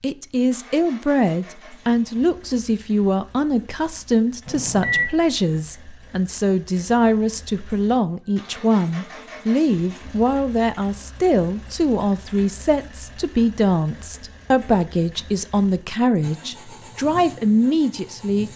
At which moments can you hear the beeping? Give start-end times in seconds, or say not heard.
4.5-5.1.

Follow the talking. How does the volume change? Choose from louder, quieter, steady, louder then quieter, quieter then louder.
steady.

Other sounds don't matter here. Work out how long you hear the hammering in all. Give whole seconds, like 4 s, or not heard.
not heard.